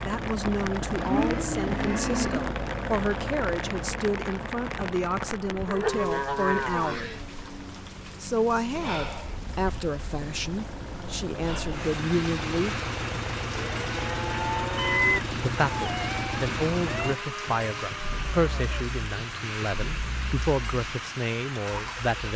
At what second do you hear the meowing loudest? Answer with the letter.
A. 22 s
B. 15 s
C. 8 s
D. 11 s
B.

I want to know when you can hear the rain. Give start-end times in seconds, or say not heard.
0.0-22.3.